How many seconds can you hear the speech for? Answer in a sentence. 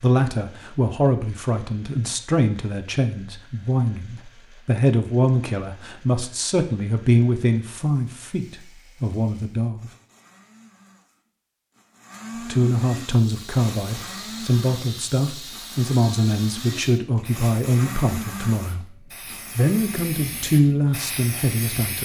You can hear the speech for 19 seconds altogether.